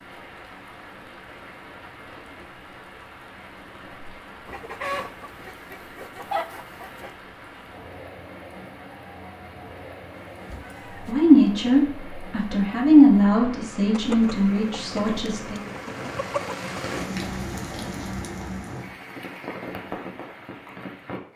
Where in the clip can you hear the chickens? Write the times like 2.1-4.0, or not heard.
4.5-7.2, 13.9-16.6.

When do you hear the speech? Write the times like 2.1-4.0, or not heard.
11.1-15.7.